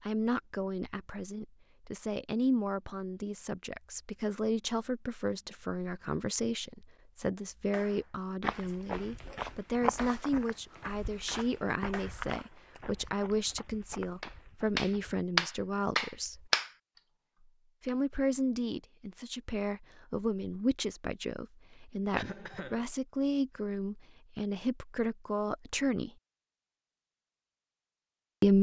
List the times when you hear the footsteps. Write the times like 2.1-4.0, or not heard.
8.4-15.2.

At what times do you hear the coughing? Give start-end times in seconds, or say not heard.
22.1-22.9.